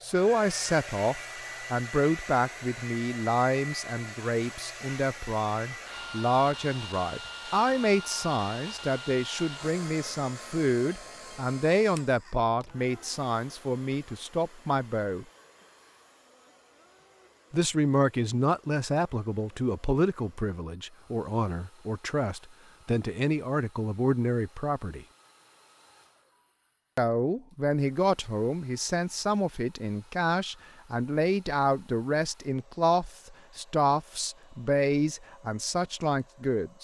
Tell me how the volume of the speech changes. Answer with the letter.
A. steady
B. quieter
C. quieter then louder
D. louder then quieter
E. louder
A.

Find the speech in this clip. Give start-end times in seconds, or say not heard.
0.0-15.2, 17.5-25.1, 26.9-36.7.